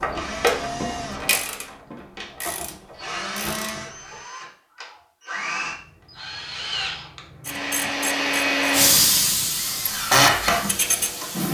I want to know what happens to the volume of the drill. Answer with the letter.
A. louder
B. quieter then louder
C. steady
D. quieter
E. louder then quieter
A.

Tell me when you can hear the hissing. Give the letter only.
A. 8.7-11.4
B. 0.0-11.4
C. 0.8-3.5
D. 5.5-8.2
A.